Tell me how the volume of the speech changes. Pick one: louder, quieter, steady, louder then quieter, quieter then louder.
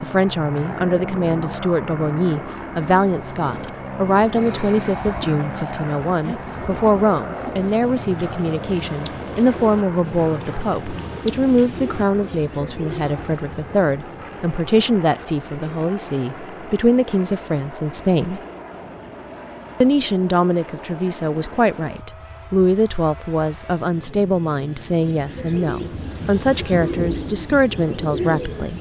steady.